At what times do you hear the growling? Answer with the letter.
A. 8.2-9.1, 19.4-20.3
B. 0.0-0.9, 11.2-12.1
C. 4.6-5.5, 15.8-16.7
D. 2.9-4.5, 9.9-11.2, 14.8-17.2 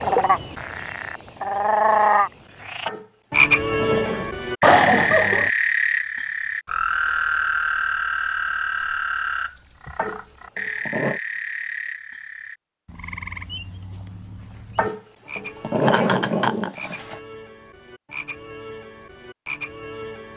D.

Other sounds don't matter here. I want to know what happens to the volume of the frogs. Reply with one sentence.
The loudness of the frogs goes down.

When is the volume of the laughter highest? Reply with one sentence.
The loudest moment of the laughter is at 5 seconds.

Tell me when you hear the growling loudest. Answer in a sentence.
The volume of the growling peaks at 16 seconds.